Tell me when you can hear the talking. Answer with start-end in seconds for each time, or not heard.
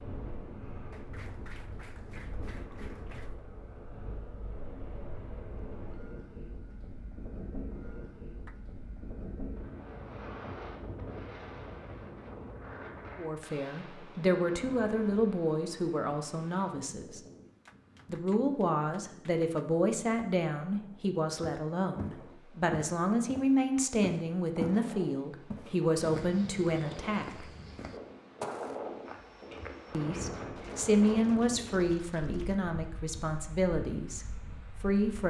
13.2-17.2, 18.1-27.4, 29.9-35.2.